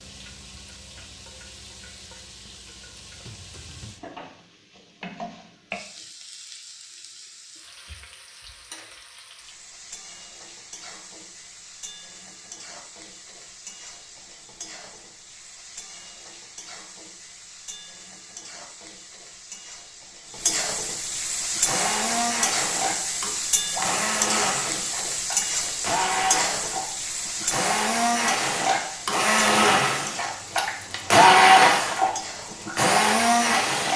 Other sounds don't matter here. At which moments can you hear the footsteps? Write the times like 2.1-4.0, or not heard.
not heard.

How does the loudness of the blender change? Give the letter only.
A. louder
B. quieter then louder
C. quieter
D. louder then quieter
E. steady
A.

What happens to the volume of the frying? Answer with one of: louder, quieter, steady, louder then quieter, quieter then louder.
louder then quieter.